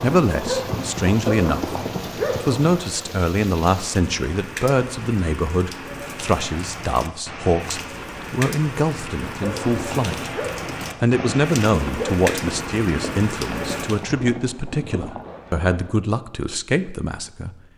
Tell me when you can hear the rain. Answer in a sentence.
The rain can be heard from 0.0 to 14.1 s.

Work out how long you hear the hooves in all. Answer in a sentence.
You can hear the hooves for 10 seconds altogether.